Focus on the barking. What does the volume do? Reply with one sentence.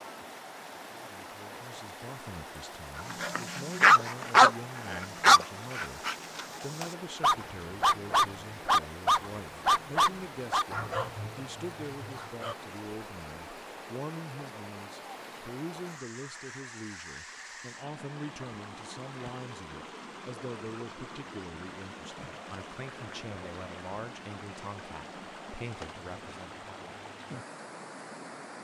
The loudness of the barking goes down.